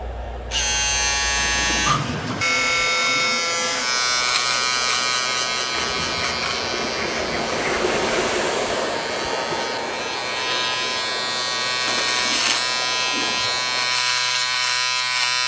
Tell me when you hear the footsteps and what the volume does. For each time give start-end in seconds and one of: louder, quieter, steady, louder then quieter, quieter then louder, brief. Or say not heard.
not heard.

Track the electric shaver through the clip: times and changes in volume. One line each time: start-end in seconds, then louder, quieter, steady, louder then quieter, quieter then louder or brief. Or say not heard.
0.0-15.4 quieter then louder.